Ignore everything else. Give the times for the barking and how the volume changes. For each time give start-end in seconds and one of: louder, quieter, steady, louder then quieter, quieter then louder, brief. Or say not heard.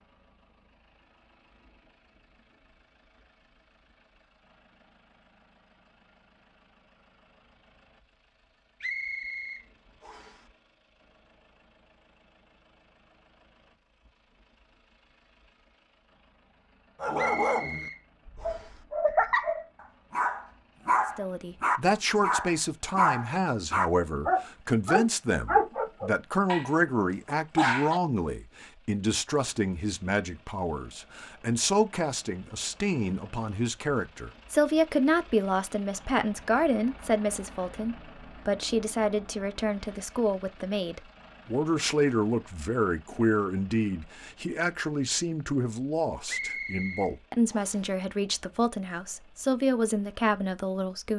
17.0-28.0 steady.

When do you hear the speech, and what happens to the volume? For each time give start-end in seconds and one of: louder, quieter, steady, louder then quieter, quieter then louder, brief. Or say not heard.
21.1-51.1 steady.